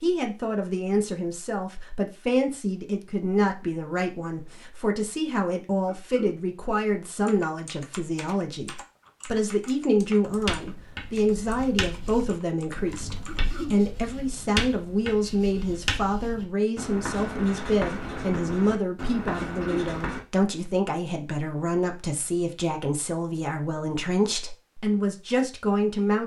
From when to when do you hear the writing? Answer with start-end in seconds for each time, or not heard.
10.2-20.2.